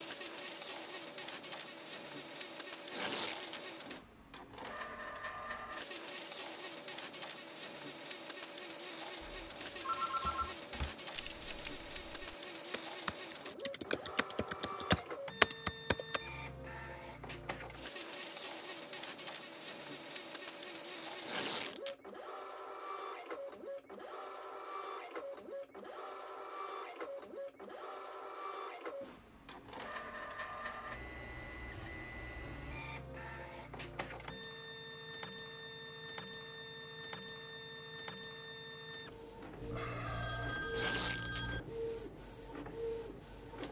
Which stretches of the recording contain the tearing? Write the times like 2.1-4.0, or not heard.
2.9-3.6, 21.2-21.9, 40.7-41.5.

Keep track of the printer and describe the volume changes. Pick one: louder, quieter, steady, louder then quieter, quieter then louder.
steady.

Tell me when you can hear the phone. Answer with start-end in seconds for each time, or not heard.
9.2-10.6, 39.6-41.6.